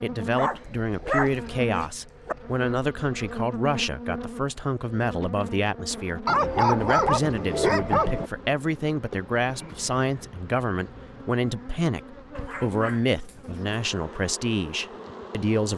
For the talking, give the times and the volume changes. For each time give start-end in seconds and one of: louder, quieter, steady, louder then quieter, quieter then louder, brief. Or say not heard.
0.0-15.7 steady.